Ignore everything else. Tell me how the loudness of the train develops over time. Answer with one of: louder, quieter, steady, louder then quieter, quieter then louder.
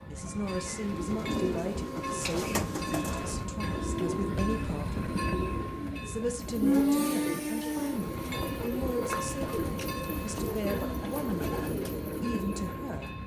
louder then quieter.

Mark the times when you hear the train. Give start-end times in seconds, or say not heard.
0.0-13.2.